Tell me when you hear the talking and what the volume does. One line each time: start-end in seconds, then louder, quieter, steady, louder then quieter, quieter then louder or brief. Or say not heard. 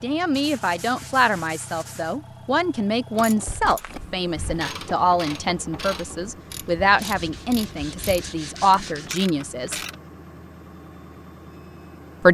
0.0-9.8 steady.